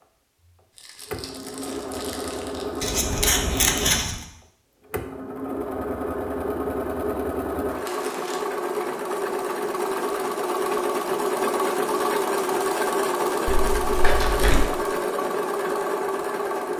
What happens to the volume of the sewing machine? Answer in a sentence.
The loudness of the sewing machine goes up.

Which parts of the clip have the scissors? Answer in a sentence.
The scissors can be heard from 2.8 to 4.2 s.